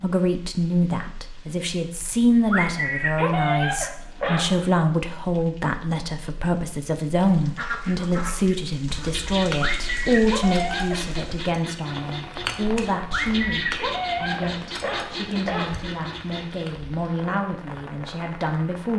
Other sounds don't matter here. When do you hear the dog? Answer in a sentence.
The dog can be heard from 2.5 to 4.7 s, from 9.6 to 11.0 s and from 13.1 to 15.8 s.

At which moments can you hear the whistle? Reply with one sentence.
The whistle can't be heard in this clip.